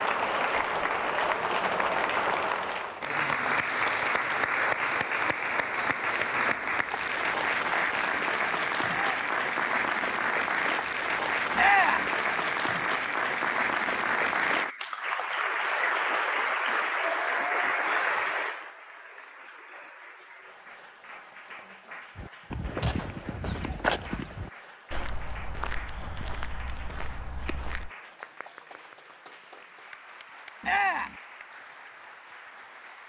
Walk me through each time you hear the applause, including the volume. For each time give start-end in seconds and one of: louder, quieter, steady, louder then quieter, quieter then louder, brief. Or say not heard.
0.0-33.0 quieter.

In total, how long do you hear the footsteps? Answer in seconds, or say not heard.
6 s.